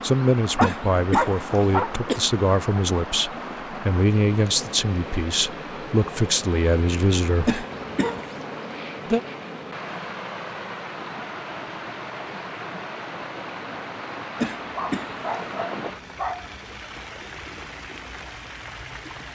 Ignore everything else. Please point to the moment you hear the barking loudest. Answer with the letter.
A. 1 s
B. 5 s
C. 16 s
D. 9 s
A.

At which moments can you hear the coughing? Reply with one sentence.
The coughing can be heard from 0.6 to 2.2 s, from 7.5 to 8.4 s and from 14.4 to 15.7 s.